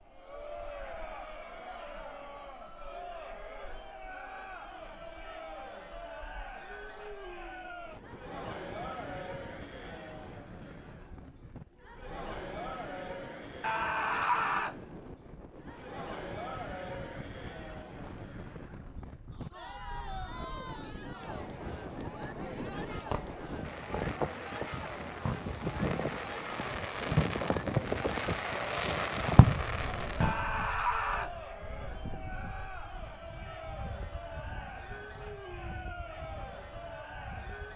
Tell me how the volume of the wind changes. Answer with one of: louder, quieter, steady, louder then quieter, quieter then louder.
louder then quieter.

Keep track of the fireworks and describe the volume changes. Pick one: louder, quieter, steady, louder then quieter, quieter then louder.
louder.